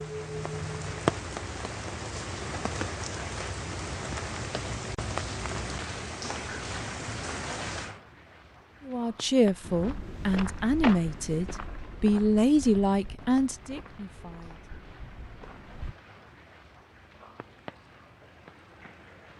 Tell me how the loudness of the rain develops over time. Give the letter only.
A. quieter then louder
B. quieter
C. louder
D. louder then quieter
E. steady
B.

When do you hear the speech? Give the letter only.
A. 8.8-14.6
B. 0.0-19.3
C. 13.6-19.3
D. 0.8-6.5
A.